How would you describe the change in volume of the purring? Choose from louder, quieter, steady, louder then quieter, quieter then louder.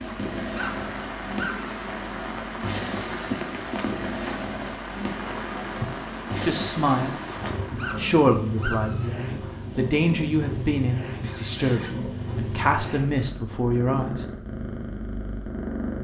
steady.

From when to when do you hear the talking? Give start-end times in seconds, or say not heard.
6.5-7.2, 8.0-14.2.